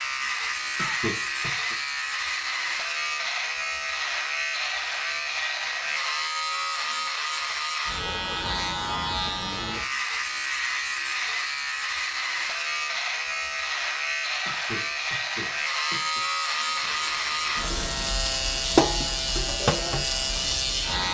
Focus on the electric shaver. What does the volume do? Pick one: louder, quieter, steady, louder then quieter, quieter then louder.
steady.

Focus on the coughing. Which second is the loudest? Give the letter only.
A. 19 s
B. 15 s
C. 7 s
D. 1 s
D.